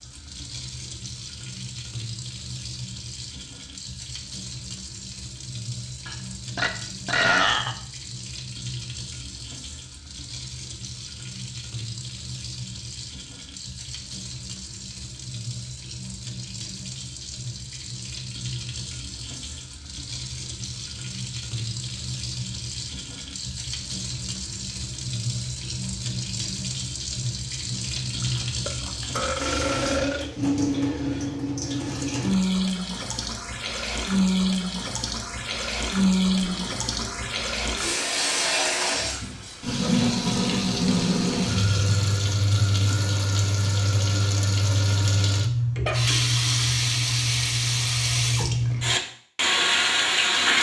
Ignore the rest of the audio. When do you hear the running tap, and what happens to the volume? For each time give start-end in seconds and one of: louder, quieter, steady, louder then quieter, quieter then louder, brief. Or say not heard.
0.0-50.5 louder.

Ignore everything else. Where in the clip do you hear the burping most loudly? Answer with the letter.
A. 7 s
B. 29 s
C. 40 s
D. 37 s
A.